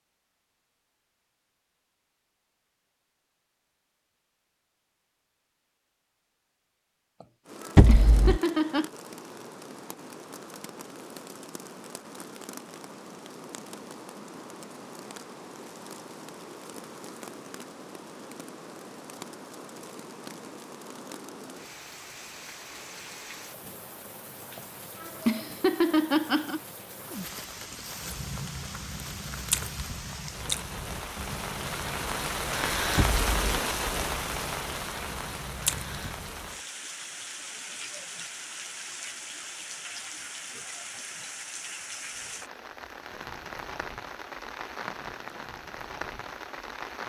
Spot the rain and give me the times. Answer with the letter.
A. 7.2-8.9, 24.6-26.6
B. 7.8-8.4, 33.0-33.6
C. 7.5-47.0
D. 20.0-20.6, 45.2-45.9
C.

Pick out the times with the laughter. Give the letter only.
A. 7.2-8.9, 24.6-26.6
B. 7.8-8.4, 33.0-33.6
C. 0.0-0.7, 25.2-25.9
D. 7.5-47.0
A.